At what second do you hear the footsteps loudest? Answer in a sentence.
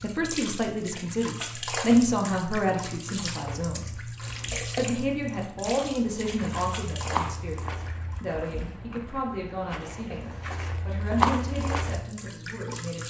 The loudest moment of the footsteps is at 11 seconds.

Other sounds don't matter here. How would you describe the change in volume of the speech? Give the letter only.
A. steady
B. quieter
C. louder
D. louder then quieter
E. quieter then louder
B.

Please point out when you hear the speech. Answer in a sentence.
The speech can be heard from 0.0 to 13.0 s.